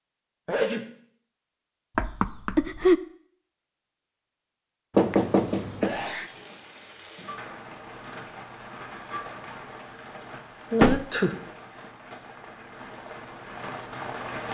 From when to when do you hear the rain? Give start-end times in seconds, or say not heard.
6.0-14.4.